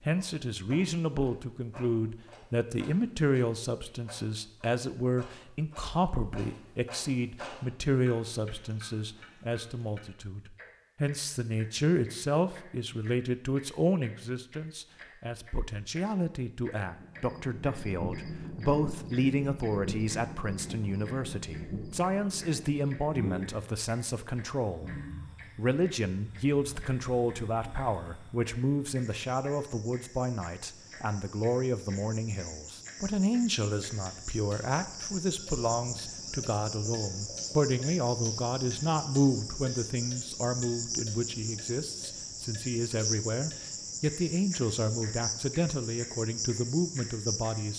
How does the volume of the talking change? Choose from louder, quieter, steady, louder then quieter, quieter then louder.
steady.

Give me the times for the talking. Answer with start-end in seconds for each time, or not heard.
0.1-24.9, 25.6-47.7.